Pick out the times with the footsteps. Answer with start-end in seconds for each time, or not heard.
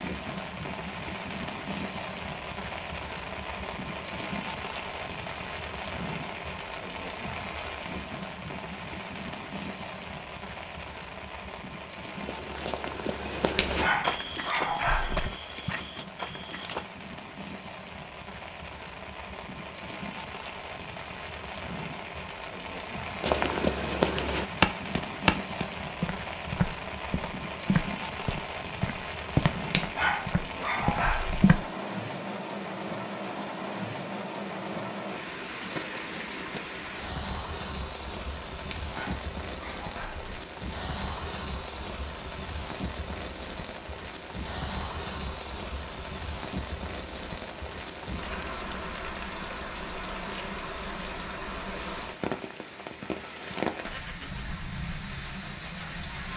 12.2-16.9, 23.2-31.6.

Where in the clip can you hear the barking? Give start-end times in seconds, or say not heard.
13.3-15.3, 29.6-31.4, 38.5-40.3.